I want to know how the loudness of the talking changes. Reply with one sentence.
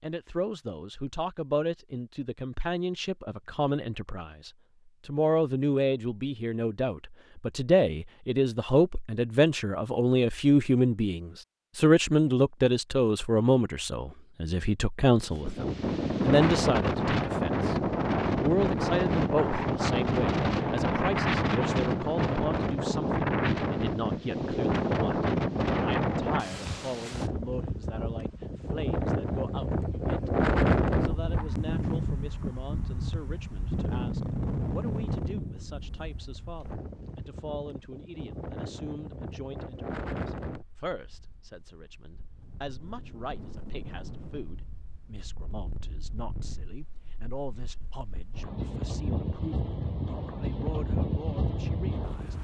The loudness of the talking goes down.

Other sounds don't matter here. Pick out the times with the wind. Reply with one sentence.
You can hear the wind from 15.3 to 52.3 s.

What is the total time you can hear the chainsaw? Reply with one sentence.
You can't hear the chainsaw here.